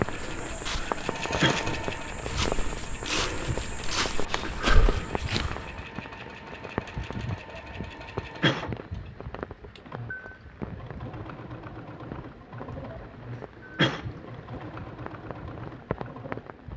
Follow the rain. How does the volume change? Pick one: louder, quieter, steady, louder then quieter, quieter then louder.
quieter.